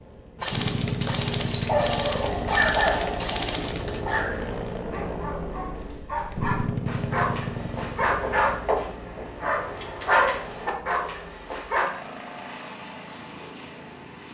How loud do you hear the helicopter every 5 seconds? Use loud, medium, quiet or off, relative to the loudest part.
loud, loud, medium.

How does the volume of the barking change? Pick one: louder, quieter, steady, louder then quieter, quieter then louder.
quieter then louder.